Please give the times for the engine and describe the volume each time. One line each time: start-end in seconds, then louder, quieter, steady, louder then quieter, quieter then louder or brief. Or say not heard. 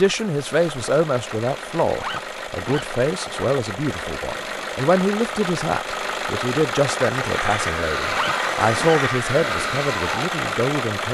0.0-11.0 louder.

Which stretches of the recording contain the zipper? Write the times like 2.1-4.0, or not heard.
1.9-2.9, 8.1-9.0.